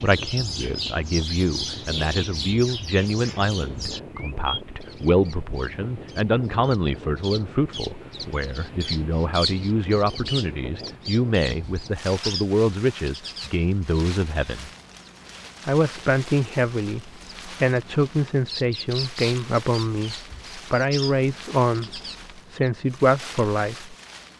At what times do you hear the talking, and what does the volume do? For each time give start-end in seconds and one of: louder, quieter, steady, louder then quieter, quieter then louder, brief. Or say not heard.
0.0-14.7 steady
15.7-23.9 steady.